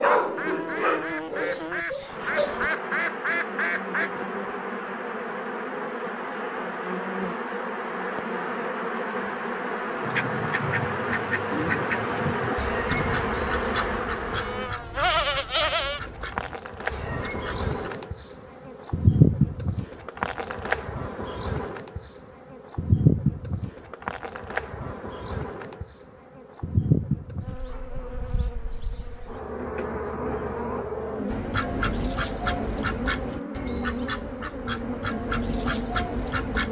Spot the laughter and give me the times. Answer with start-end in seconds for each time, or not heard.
not heard.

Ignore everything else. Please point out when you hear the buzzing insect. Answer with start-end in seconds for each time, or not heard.
0.0-36.6.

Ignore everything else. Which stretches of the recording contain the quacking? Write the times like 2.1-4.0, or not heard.
0.1-4.1, 10.0-17.9, 31.2-36.6.